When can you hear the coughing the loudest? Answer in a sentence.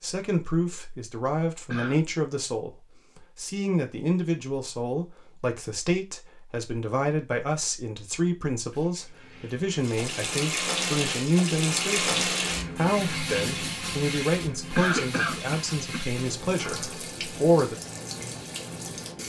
The volume of the coughing peaks at 15 seconds.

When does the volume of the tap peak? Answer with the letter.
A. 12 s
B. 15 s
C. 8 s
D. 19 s
A.